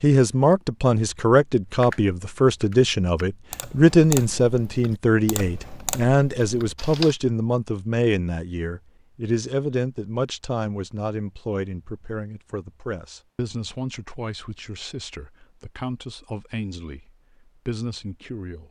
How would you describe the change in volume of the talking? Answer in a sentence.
The loudness of the talking goes down.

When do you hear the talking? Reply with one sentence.
You can hear the talking from 0.0 to 18.6 s.